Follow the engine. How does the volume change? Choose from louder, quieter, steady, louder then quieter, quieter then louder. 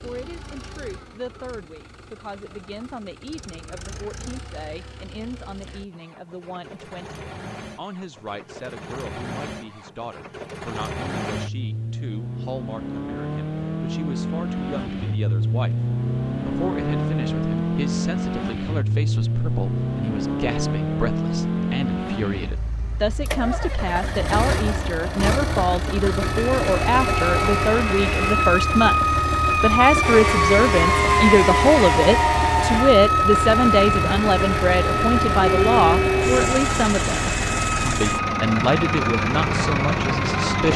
louder.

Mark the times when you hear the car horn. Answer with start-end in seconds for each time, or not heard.
34.9-36.5.